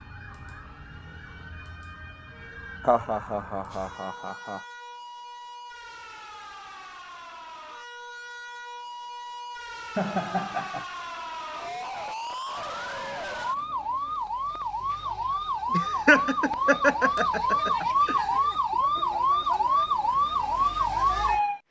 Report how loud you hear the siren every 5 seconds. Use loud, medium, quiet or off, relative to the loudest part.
quiet, quiet, medium, loud, loud.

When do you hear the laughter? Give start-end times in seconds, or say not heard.
2.8-4.6, 9.9-10.8, 15.7-18.1.